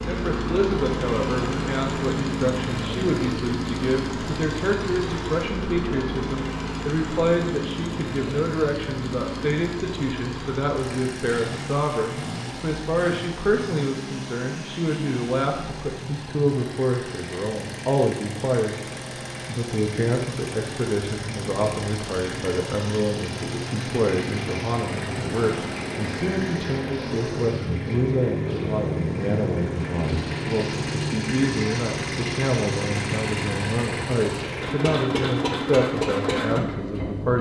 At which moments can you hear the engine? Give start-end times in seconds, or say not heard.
0.0-37.3.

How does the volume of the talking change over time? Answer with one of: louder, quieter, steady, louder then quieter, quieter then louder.
steady.